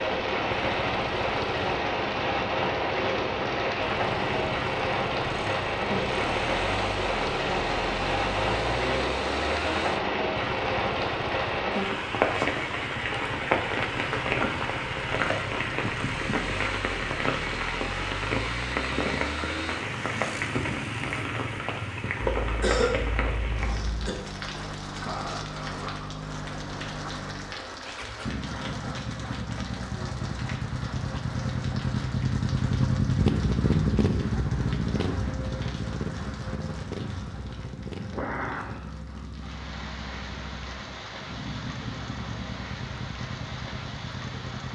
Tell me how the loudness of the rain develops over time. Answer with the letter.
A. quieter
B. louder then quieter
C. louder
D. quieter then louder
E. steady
A.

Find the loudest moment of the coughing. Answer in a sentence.
The loudest moment of the coughing is at 23 seconds.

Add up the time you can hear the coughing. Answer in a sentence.
You can hear the coughing for 2 seconds altogether.